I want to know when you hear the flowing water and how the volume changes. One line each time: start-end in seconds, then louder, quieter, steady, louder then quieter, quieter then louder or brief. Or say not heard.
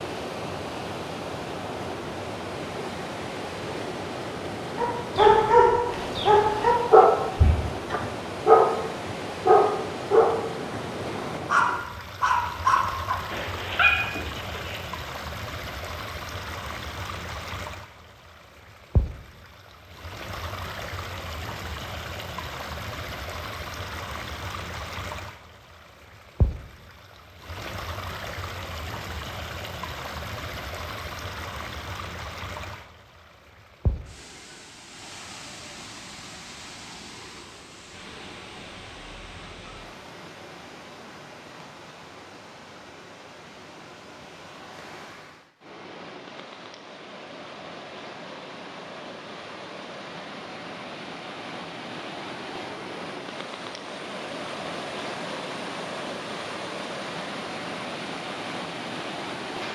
0.0-59.7 quieter then louder.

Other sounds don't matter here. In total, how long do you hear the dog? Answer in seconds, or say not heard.
9 s.